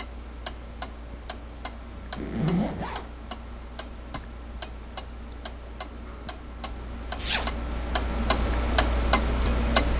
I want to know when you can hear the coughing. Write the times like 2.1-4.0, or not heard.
not heard.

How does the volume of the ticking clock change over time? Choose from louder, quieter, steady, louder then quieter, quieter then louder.
louder.